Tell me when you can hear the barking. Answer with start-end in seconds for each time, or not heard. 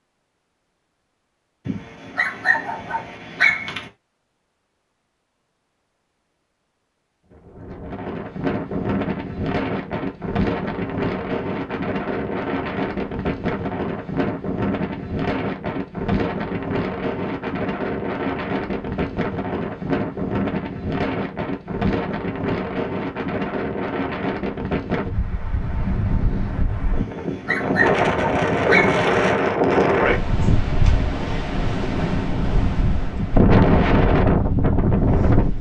1.6-3.9, 26.9-29.1.